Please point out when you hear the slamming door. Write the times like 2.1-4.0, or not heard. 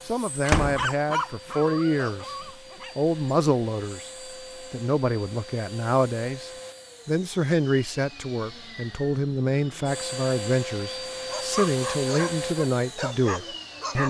0.5-0.9.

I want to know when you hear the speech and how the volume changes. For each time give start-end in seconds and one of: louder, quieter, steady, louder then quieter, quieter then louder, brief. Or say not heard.
0.1-14.0 steady.